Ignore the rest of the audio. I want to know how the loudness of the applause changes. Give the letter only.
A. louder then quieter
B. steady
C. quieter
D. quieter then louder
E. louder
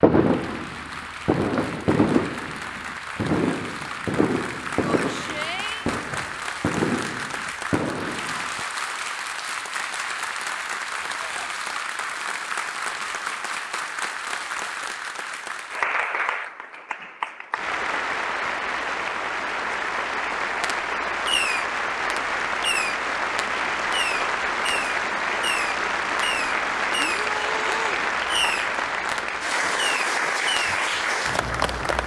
E.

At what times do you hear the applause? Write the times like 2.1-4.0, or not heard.
0.0-32.0.